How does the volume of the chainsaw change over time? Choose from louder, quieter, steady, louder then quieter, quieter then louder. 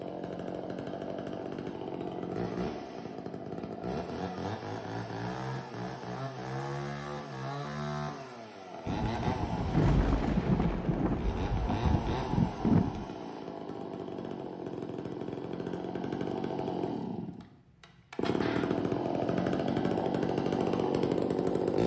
louder.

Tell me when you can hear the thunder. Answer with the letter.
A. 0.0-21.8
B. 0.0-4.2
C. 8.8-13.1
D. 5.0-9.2
C.